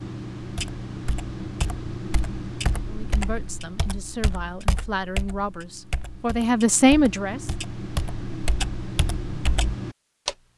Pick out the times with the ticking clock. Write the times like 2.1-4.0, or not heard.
0.0-10.3.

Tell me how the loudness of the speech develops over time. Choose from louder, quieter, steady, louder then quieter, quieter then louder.
louder.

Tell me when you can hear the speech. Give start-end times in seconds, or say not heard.
2.9-7.5.